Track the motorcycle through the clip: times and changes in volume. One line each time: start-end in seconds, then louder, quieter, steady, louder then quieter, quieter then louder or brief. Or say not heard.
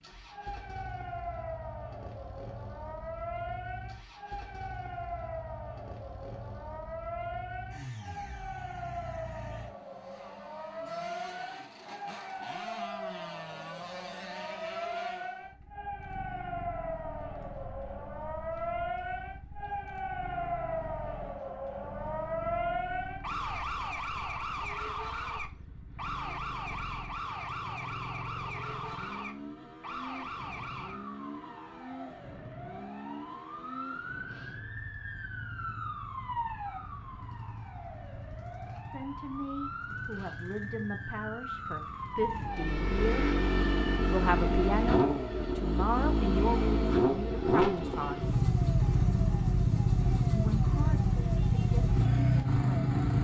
0.0-53.2 louder.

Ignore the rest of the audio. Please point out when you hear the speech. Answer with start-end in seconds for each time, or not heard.
38.9-43.3, 44.0-48.3, 50.3-53.2.